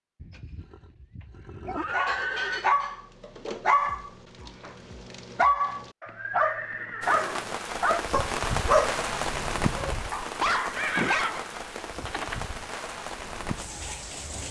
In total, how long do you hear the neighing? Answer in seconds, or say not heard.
6 s.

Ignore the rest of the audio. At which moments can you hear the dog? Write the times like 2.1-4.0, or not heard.
1.9-11.4.